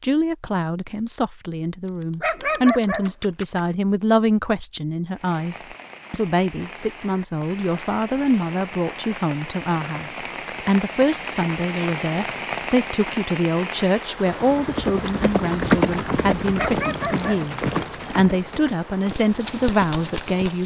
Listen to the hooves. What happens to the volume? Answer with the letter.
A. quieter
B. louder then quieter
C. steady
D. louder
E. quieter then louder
A.